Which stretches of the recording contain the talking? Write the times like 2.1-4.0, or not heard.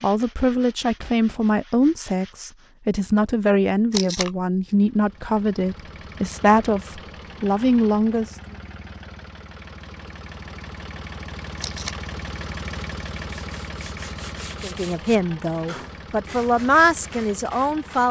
0.0-8.3, 14.6-18.0.